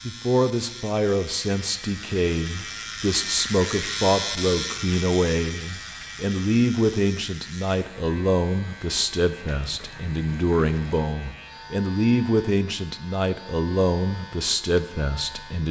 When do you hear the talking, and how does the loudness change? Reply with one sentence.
You can hear the talking from 0.1 to 15.6 s, at a steady volume.